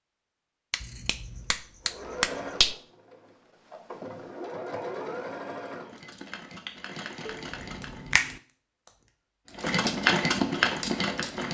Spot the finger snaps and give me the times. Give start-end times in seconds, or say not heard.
0.7-2.8, 7.2-8.4.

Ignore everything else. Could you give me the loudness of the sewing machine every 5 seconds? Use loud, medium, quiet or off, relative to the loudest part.
quiet, medium, loud.